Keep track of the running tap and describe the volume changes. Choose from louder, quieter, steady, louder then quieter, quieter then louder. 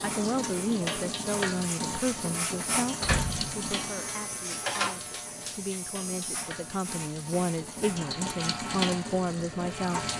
quieter then louder.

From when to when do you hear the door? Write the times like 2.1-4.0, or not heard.
3.0-3.7.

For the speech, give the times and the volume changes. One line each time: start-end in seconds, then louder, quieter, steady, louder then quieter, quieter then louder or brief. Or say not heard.
0.0-10.1 quieter then louder.